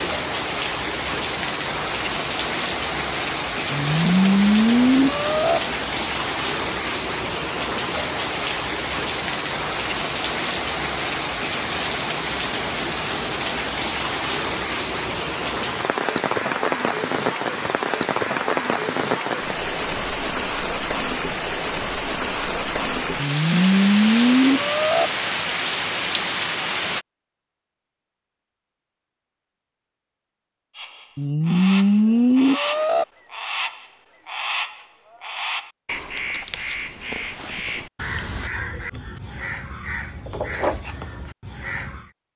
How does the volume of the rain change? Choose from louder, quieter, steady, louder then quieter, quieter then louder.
steady.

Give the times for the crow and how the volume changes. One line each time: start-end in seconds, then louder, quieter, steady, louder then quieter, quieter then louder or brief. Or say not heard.
30.8-42.1 steady.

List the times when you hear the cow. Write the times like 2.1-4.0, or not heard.
3.7-5.6, 23.1-25.1, 31.1-33.0.